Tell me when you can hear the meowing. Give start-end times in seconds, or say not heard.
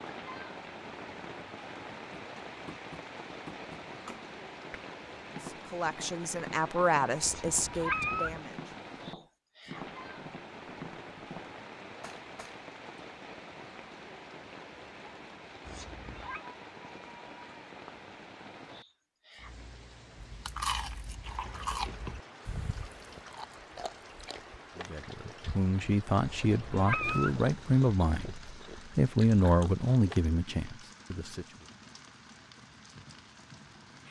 7.2-8.4, 15.7-16.4, 26.2-27.4.